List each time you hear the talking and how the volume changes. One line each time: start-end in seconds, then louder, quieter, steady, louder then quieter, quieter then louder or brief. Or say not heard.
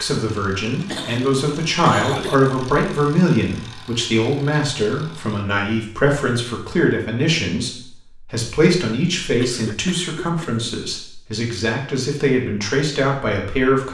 0.0-13.8 steady.